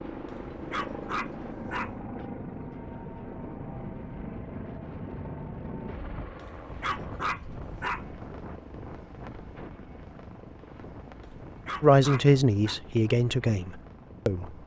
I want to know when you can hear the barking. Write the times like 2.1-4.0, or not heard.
0.7-1.9, 6.8-8.1, 11.7-12.8.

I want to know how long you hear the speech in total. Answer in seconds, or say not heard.
3 s.